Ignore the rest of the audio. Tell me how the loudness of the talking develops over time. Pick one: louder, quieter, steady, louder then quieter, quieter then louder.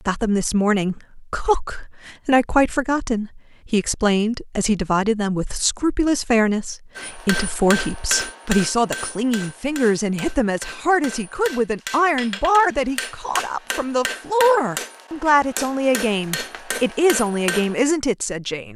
steady.